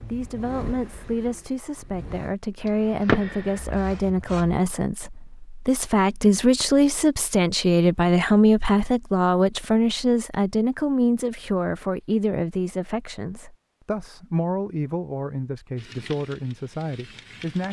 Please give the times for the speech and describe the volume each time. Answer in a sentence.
The speech can be heard from 0.0 to 17.6 s, getting louder then quieter.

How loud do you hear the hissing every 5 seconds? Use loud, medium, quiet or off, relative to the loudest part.
loud, off, off, quiet.